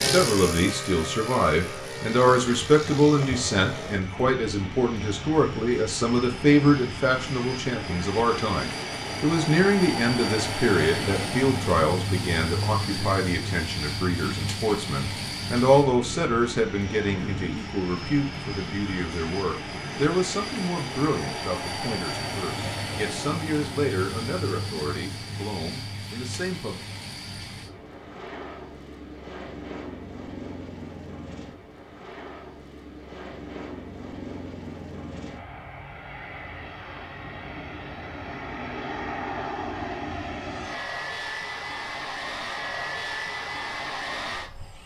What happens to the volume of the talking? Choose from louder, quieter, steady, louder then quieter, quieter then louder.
quieter.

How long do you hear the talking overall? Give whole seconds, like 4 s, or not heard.
27 s.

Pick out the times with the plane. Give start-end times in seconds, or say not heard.
0.0-44.8.